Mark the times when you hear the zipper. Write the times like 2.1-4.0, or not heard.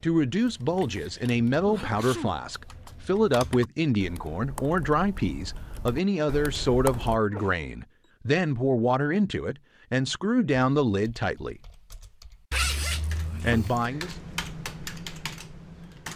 12.5-13.7.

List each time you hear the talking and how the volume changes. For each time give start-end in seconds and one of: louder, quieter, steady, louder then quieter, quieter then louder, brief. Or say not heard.
0.0-11.6 steady
13.4-14.2 brief.